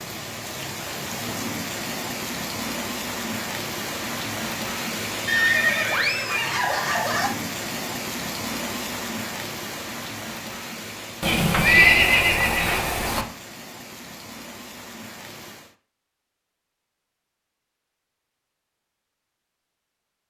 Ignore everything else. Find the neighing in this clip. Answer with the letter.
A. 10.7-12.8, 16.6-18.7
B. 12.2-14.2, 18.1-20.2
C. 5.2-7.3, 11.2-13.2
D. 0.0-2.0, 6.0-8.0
C.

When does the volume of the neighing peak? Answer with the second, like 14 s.
12 s.